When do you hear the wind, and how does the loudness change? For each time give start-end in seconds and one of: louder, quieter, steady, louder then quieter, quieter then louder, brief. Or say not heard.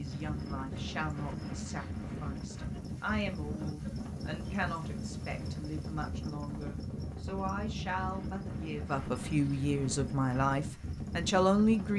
0.0-11.9 steady.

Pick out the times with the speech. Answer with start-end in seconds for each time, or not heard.
0.0-11.9.